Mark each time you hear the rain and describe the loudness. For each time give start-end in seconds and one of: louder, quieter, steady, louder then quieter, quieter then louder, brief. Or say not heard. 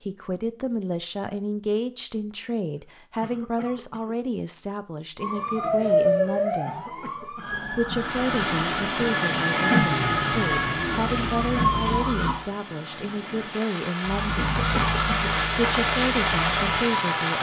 7.8-17.3 quieter then louder.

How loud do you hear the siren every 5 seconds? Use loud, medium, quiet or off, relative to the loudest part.
off, loud, loud, medium.